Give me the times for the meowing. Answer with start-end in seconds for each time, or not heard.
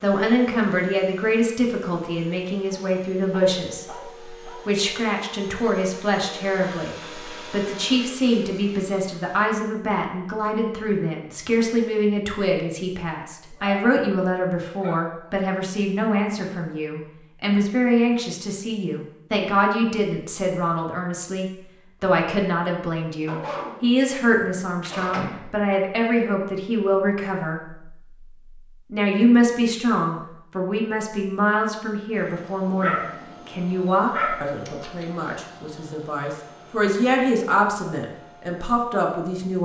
not heard.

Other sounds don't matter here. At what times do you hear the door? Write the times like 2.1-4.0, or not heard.
24.8-25.5.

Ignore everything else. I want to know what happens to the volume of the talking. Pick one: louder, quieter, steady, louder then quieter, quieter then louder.
steady.